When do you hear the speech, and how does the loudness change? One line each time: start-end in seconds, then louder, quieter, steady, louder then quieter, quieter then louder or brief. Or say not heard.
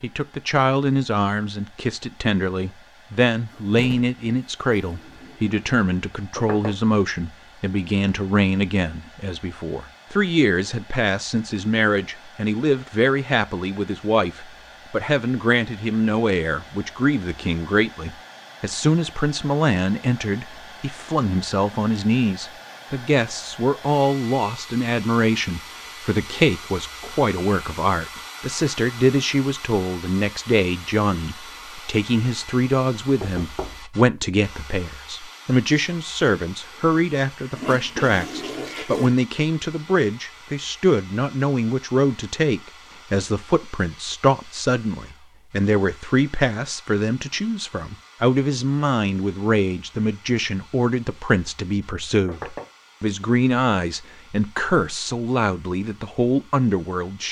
0.0-57.2 steady.